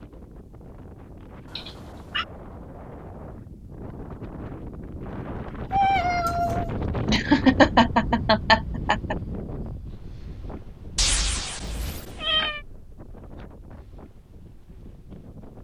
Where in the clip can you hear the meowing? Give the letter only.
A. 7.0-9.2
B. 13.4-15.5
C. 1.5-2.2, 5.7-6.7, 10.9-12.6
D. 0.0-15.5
C.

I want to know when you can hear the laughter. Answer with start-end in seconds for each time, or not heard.
7.0-9.2.